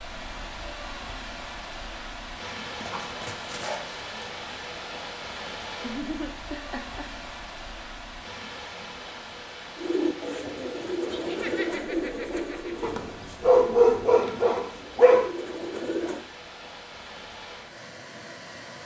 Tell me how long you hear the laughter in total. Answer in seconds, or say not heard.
3 s.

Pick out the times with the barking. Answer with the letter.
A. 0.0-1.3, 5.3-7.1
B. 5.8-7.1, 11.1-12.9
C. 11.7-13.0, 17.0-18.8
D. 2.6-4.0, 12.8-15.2
D.